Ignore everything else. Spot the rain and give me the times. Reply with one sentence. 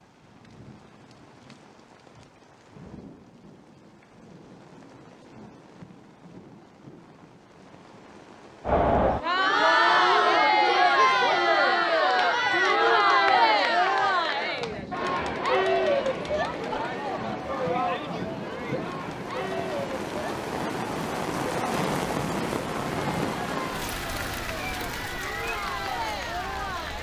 You can hear the rain from 0.0 to 26.9 s.